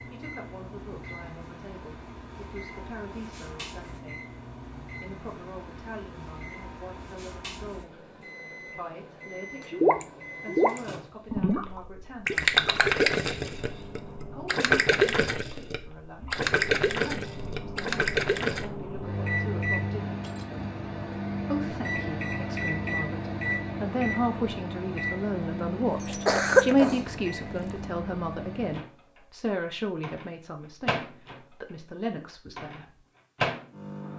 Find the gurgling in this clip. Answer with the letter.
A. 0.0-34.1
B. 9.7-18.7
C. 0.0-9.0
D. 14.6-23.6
B.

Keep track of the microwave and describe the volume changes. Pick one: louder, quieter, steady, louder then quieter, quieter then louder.
louder.